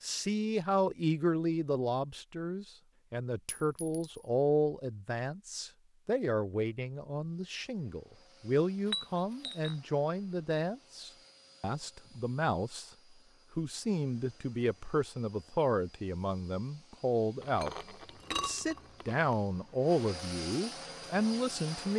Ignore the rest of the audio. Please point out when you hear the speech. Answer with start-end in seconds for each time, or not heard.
0.0-12.9, 13.6-17.8, 18.4-21.9.